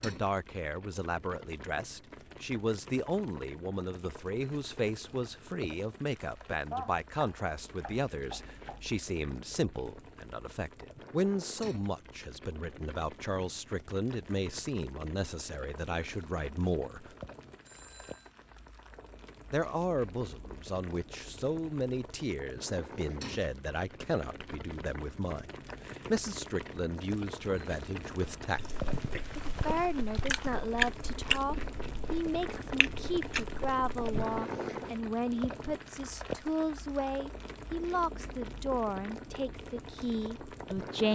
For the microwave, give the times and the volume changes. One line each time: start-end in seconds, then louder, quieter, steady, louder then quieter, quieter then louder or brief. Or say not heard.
not heard.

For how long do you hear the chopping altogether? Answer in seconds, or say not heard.
2 s.